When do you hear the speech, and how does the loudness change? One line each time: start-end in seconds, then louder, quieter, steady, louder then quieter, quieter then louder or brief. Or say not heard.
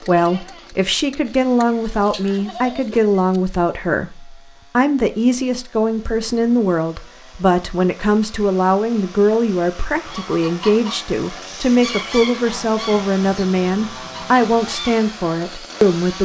0.1-16.1 steady.